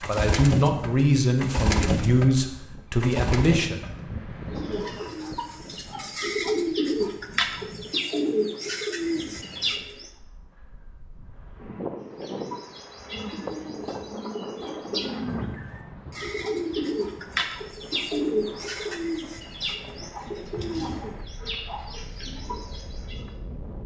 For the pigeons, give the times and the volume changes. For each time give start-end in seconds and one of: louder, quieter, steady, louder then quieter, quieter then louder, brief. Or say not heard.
0.0-10.1 quieter then louder
12.2-23.4 louder then quieter.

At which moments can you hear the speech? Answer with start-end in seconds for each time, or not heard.
0.0-3.8.